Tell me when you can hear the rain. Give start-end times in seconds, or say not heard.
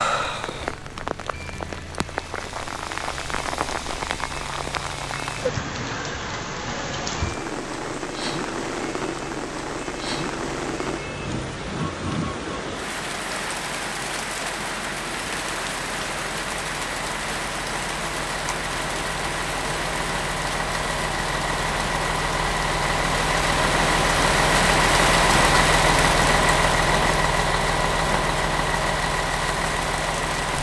0.0-30.5.